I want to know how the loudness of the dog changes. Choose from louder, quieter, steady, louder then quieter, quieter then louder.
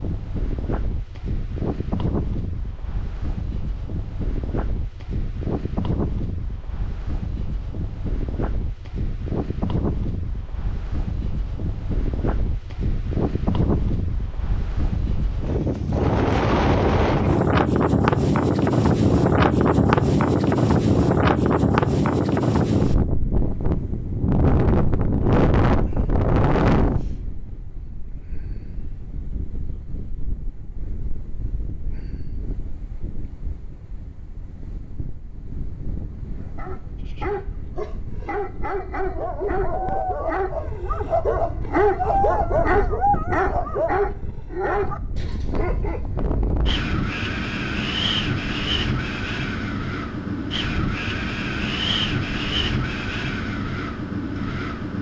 louder then quieter.